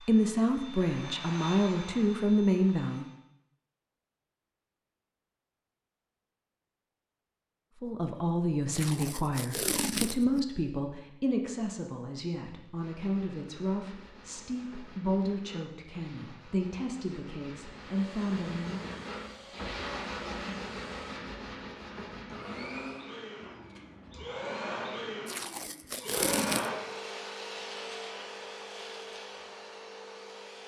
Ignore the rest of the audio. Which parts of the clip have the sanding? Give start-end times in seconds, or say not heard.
12.8-24.4.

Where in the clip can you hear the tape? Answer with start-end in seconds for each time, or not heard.
8.7-10.4, 25.2-26.7.